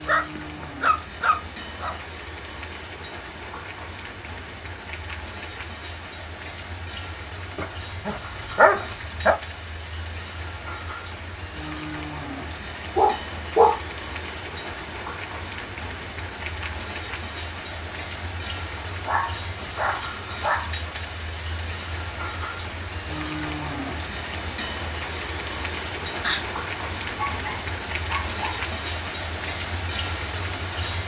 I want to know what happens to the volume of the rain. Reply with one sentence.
The loudness of the rain goes up.